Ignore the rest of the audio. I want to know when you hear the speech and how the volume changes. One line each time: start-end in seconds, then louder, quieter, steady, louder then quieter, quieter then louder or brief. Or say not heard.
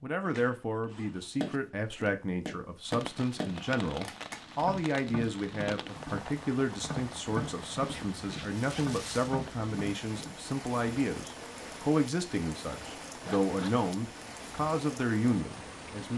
0.0-16.1 steady.